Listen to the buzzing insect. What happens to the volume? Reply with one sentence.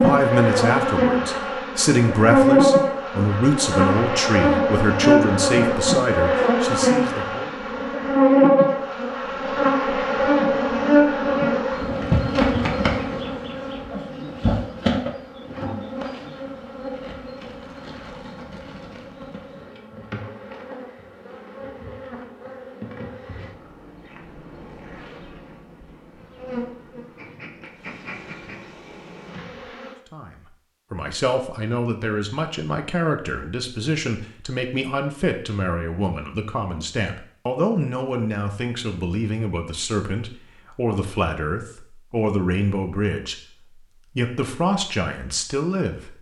The loudness of the buzzing insect goes down.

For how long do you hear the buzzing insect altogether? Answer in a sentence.
You can hear the buzzing insect for 30 seconds altogether.